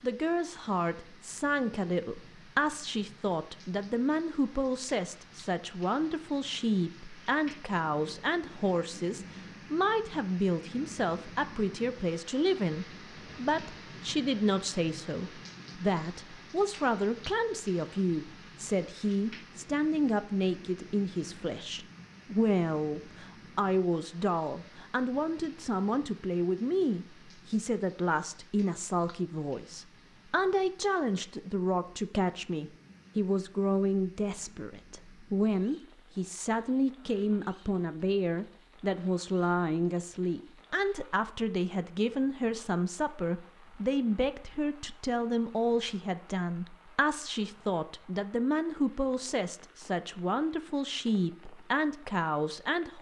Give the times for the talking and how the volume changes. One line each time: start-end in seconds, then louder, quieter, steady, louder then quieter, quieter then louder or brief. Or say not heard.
0.0-52.9 steady.